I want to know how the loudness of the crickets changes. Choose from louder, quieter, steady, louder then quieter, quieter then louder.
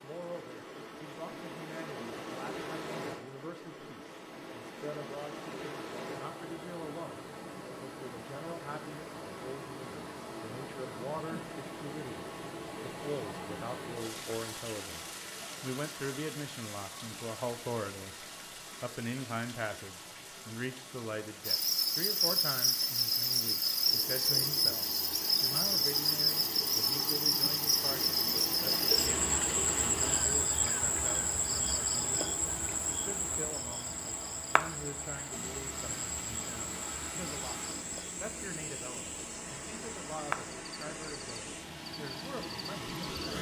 quieter.